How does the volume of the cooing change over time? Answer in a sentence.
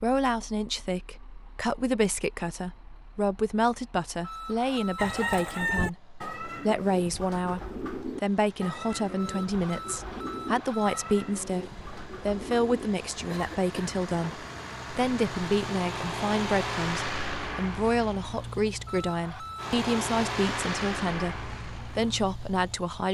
The volume of the cooing goes down.